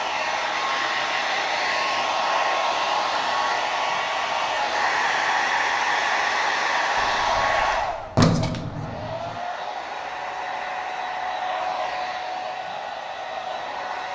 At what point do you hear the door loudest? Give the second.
8 s.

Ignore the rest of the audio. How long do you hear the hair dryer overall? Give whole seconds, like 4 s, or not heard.
14 s.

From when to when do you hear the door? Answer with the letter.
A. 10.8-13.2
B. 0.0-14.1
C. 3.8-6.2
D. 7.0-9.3
D.